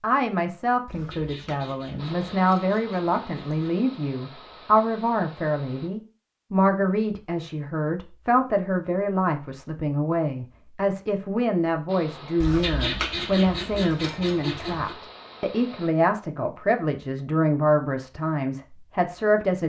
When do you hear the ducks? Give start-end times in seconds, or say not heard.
0.8-3.9, 12.4-14.9.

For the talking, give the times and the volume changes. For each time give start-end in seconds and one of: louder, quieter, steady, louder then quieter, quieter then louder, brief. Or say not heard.
0.0-19.6 steady.